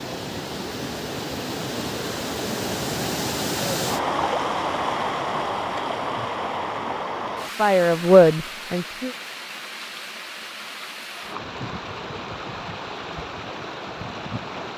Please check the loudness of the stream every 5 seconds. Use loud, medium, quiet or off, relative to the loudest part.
loud, loud, medium.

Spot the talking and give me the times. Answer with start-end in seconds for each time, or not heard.
7.5-9.2.